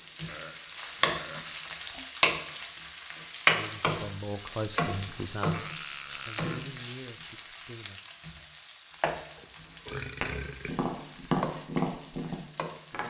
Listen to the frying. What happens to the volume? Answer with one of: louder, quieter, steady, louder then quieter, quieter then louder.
quieter.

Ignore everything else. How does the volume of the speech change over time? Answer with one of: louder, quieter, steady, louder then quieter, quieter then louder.
quieter.